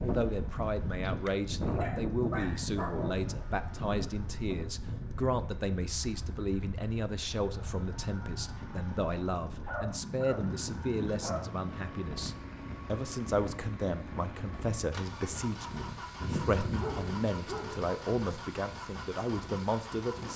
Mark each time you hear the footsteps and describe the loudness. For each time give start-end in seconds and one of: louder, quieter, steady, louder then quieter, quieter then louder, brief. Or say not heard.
not heard.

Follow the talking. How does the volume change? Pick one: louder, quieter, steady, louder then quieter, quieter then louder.
steady.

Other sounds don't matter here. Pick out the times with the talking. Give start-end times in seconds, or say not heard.
0.0-20.3.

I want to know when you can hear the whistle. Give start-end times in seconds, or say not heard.
not heard.